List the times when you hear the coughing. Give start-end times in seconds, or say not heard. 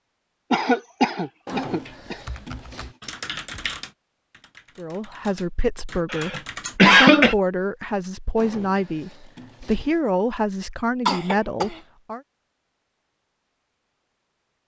0.5-2.2, 6.1-7.3, 11.1-11.8.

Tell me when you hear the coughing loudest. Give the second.
7 s.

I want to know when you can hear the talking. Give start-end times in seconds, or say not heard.
4.8-12.2.